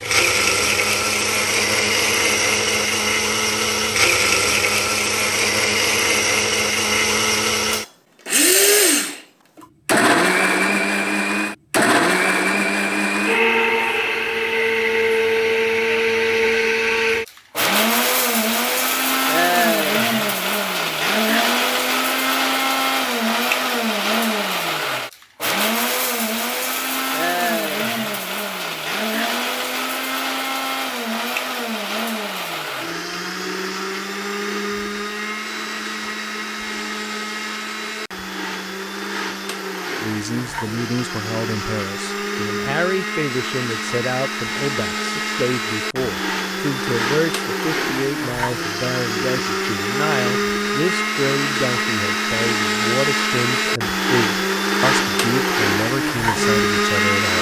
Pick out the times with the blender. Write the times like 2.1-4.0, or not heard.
0.0-57.3.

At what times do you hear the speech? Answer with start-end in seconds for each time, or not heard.
40.0-57.3.